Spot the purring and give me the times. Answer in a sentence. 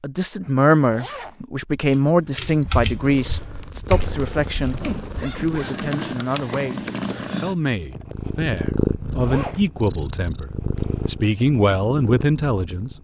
You can hear the purring from 3.0 to 12.9 s.